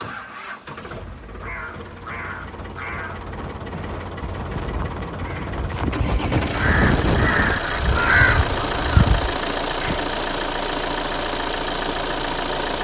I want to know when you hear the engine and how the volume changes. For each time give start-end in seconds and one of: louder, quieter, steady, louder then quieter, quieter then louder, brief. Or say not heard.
0.0-12.8 louder.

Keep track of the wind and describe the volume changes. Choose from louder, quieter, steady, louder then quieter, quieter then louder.
louder then quieter.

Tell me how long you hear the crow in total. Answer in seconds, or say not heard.
9 s.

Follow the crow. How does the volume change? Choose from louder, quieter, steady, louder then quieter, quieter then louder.
louder.